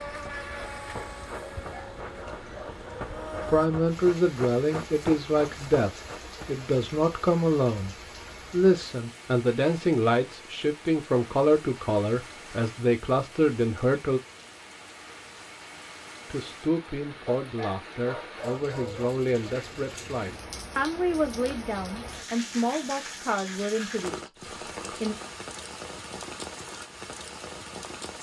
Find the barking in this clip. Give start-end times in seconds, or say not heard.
1.4-3.4, 17.2-19.1.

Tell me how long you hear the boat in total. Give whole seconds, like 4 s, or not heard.
4 s.